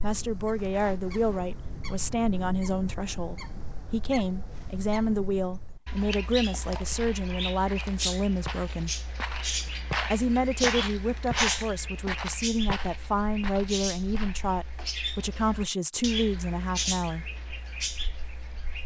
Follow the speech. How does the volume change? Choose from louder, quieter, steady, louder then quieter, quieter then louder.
steady.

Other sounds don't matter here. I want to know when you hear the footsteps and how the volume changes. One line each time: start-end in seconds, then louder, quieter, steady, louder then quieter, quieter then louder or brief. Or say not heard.
6.8-14.5 louder then quieter.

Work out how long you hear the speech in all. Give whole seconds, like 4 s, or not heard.
16 s.